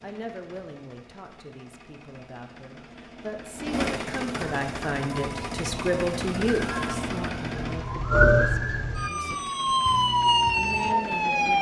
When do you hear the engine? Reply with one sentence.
The engine can be heard from 0.0 to 11.5 s.